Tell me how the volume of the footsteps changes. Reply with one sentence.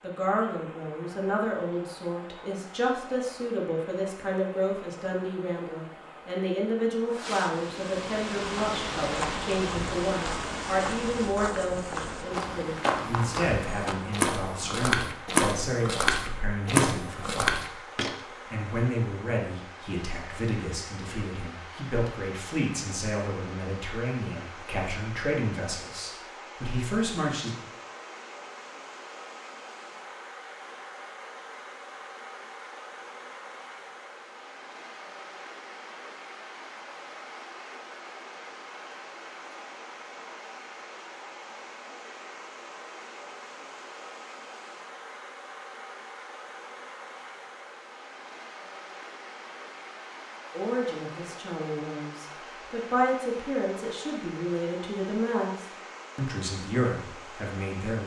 The volume of the footsteps goes up.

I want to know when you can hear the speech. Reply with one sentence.
The speech can be heard from 0.0 to 27.6 s and from 50.5 to 58.0 s.